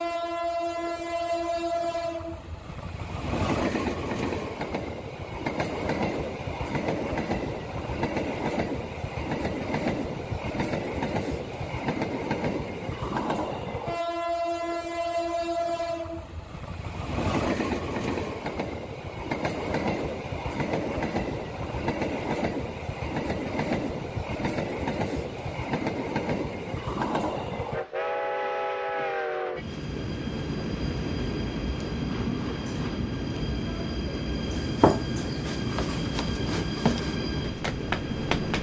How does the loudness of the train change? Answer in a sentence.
The loudness of the train stays about the same.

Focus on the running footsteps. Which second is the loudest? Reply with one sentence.
The loudest moment of the running footsteps is at 35 seconds.